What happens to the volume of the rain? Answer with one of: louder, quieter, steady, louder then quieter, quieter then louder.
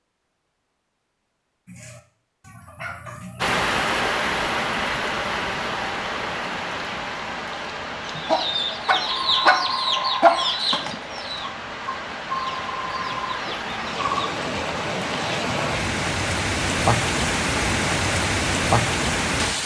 quieter then louder.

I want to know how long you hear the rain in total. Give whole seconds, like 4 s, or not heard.
16 s.